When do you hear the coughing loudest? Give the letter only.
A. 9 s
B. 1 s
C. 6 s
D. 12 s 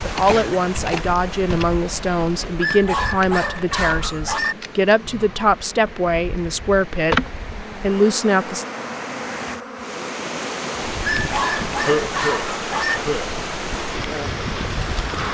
D.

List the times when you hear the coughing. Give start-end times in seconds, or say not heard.
0.2-1.1, 11.8-13.3.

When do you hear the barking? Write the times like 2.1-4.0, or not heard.
2.6-4.5, 11.0-13.0.